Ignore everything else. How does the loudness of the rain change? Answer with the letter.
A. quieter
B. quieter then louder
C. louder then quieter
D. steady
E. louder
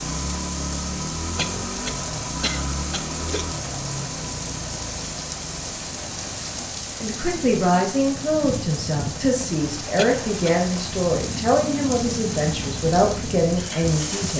D.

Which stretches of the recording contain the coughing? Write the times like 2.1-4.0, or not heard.
1.4-3.5, 9.9-10.6.